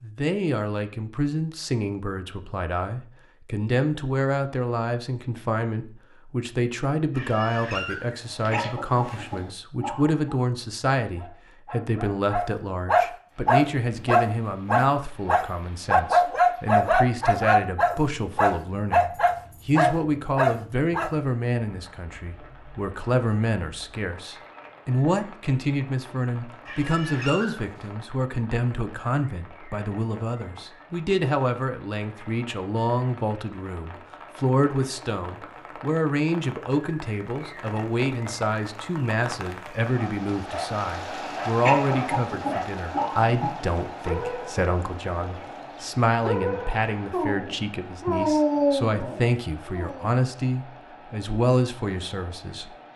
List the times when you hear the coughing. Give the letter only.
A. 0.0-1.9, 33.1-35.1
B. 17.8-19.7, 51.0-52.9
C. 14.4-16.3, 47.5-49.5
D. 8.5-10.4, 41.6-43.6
D.